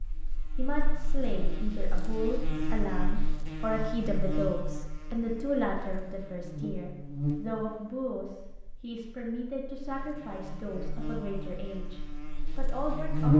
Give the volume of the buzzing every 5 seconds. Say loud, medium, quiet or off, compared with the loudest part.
medium, medium, loud.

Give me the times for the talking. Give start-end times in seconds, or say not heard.
0.3-13.3.